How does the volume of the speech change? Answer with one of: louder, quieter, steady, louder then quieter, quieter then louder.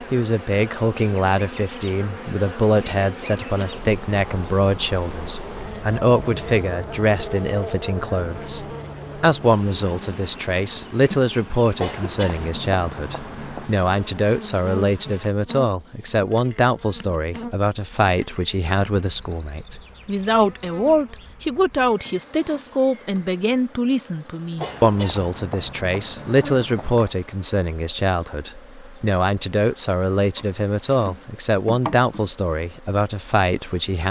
steady.